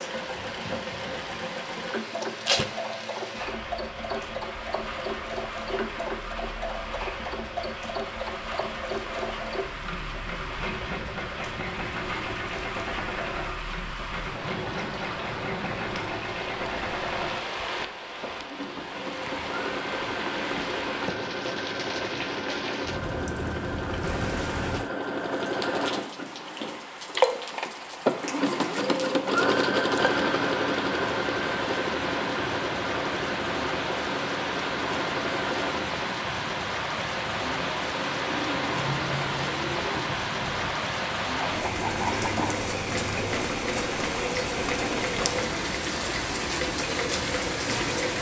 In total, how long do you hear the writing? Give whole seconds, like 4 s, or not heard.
not heard.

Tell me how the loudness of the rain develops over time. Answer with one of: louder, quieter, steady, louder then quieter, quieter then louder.
louder.